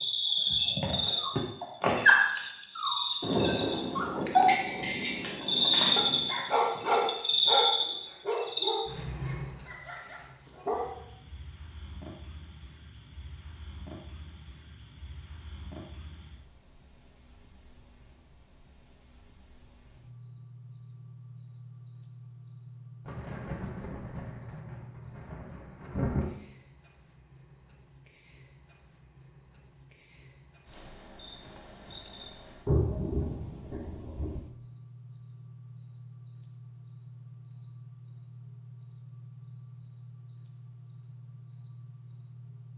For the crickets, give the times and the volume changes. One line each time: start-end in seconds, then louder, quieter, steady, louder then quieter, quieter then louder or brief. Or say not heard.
0.0-42.7 quieter.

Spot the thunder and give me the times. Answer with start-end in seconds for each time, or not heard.
3.2-6.3, 23.1-26.2, 32.6-34.4.